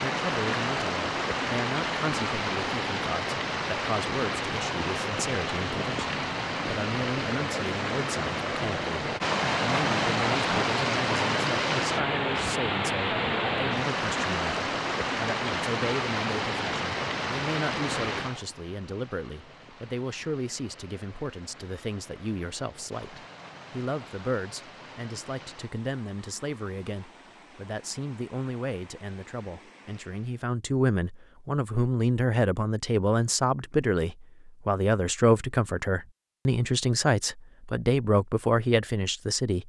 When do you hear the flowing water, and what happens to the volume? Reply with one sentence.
You can hear the flowing water from 0.0 to 30.4 s, getting quieter.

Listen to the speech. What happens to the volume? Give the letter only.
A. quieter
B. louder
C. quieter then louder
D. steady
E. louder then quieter
B.